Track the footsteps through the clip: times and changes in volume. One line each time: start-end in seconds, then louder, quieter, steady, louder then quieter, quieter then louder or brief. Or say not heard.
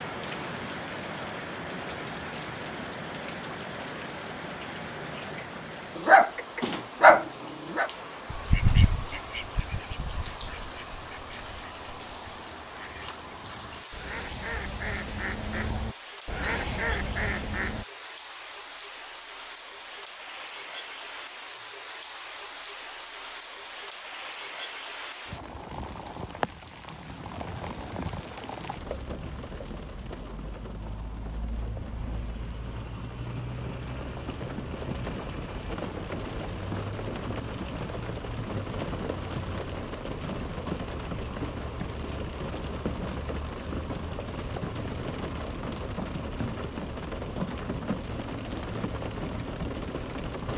not heard.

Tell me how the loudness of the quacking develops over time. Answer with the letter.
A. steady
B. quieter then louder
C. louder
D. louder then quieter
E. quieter
B.